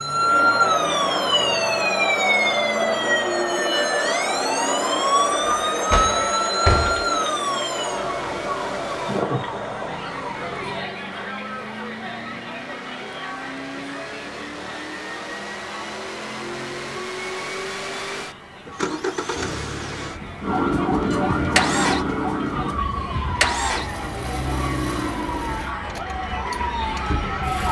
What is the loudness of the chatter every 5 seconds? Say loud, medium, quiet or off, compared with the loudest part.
loud, loud, medium, quiet, quiet, medium.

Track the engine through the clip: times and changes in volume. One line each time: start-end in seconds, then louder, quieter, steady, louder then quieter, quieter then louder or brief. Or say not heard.
0.0-27.6 louder.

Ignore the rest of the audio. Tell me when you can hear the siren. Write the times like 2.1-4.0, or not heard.
0.0-10.8, 20.4-27.6.